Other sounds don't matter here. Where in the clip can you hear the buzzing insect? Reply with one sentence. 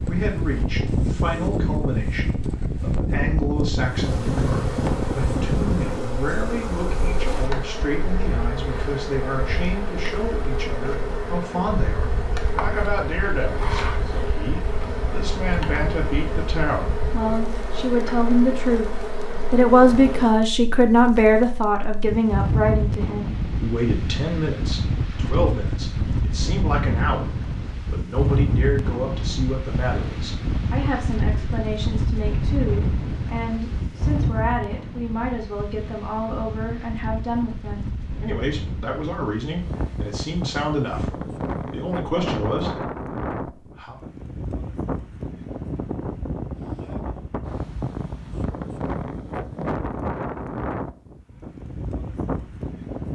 The buzzing insect can be heard from 3.8 to 20.4 s.